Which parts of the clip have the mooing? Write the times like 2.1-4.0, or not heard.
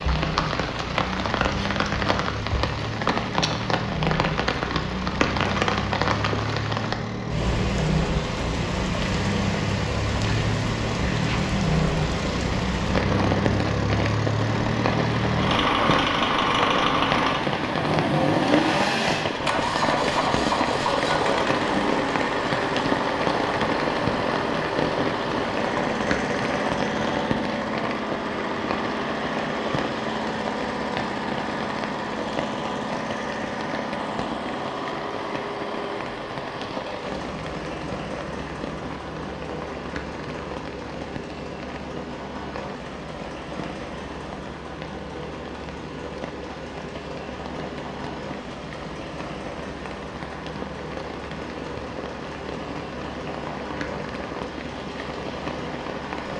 not heard.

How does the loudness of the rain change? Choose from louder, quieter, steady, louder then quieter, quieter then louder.
quieter.